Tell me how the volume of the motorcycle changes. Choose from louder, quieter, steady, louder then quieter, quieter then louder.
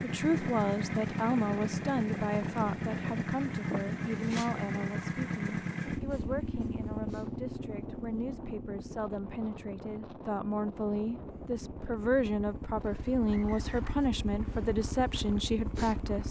quieter then louder.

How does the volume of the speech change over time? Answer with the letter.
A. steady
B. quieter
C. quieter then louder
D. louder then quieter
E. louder
C.